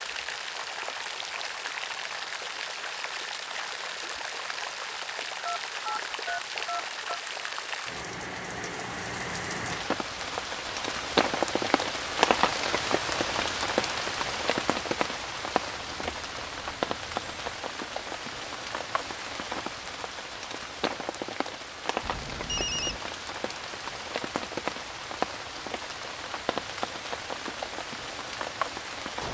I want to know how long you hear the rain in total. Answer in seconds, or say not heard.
29 s.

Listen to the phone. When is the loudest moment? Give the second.
23 s.